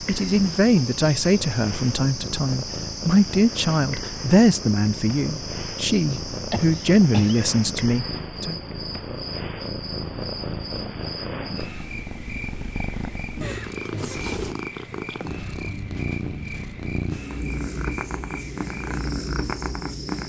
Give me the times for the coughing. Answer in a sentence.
You can hear the coughing from 6.5 to 7.5 s.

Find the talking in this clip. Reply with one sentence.
The talking can be heard from 0.1 to 8.6 s.